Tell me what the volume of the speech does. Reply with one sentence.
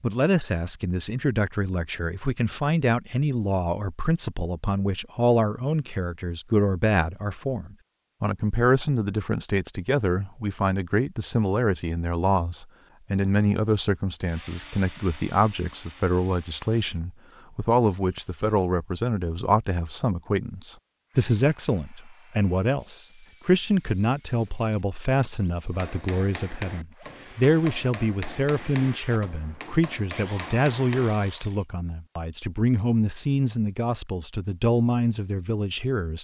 The volume of the speech stays about the same.